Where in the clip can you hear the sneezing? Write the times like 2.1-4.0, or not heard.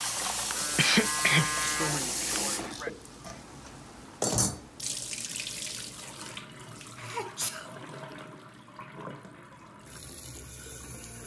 0.8-2.9, 7.0-8.2.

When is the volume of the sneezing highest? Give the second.
1 s.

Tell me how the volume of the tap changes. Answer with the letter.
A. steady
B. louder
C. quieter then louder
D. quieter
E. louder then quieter
D.